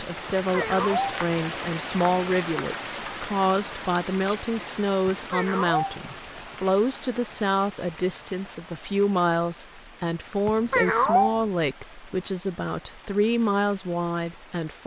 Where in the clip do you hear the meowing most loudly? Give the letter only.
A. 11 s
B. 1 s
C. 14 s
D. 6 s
A.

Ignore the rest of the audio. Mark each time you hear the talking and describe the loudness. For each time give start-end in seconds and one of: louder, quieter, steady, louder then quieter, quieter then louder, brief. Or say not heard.
0.0-14.8 steady.